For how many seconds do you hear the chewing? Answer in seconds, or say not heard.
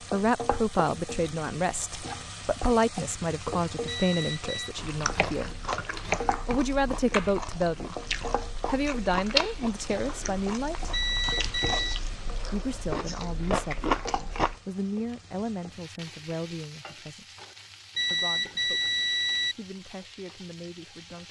10 s.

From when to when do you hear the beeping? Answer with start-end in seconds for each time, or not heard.
3.9-4.7, 10.9-12.0, 17.9-19.6.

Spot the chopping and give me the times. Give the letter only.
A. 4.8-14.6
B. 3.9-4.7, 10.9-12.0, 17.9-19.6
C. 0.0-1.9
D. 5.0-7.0
D.